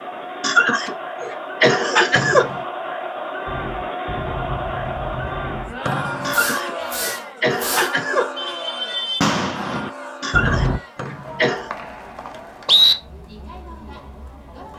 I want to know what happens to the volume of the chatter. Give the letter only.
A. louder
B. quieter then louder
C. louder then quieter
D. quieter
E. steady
D.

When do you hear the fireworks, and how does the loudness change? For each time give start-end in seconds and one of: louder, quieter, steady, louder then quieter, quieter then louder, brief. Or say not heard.
3.5-10.8 louder.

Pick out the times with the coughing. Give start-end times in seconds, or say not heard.
0.4-2.5, 6.2-8.2, 10.2-11.7.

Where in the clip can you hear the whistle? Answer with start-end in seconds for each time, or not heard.
2.1-2.6, 5.8-6.6, 10.9-12.9.